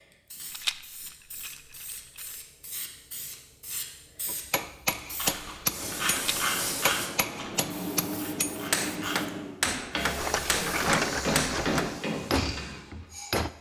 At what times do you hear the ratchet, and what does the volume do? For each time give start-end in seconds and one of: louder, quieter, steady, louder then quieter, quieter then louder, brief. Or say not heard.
5.2-12.8 quieter then louder.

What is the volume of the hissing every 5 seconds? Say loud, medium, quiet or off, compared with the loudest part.
medium, loud, medium.